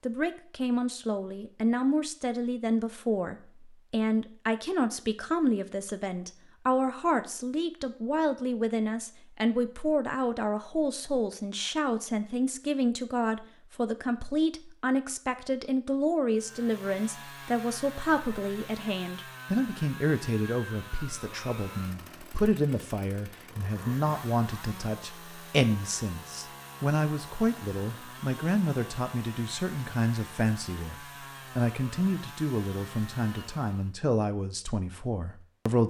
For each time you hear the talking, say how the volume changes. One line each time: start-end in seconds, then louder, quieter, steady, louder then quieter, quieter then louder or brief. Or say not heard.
0.0-35.8 steady.